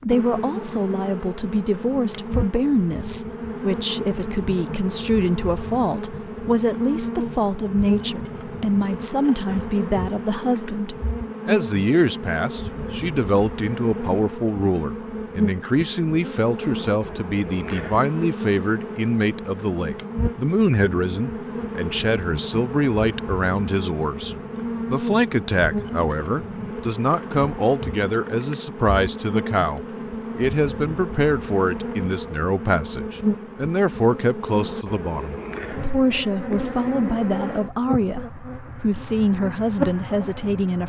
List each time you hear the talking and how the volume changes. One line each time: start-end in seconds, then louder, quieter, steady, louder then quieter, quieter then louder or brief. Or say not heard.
0.0-40.8 steady.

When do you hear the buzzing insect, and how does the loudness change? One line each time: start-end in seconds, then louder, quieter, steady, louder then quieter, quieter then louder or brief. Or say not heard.
0.0-40.8 steady.